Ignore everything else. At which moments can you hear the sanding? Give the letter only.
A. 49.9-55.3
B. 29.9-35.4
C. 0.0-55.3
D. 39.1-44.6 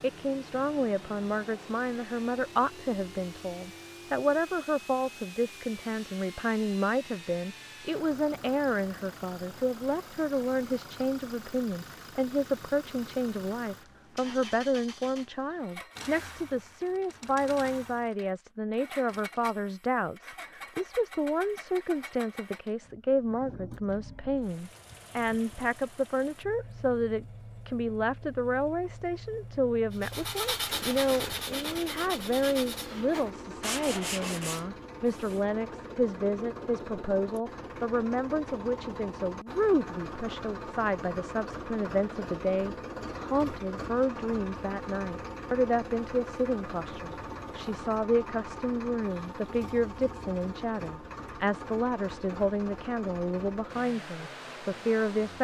B.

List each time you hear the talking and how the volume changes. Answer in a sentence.
You can hear the talking from 0.0 to 55.3 s, at a steady volume.